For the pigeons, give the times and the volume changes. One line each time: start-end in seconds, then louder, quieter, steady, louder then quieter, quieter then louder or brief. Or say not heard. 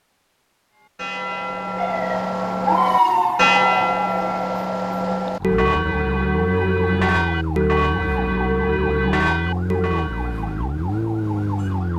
not heard.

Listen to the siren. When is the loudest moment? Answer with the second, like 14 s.
3 s.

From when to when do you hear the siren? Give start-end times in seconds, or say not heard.
1.8-11.9.